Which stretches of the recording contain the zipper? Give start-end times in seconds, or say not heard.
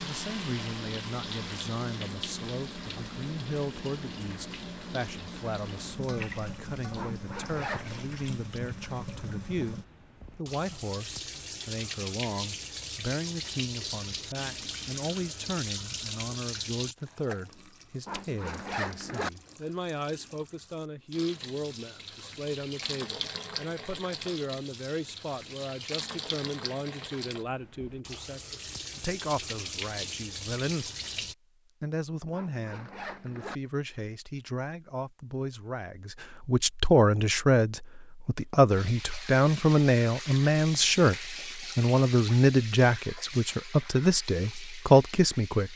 7.0-8.0, 18.1-19.3, 32.3-33.6.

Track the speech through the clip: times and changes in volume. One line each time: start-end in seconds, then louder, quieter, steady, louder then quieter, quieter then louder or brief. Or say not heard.
0.0-30.9 steady
31.8-45.7 louder.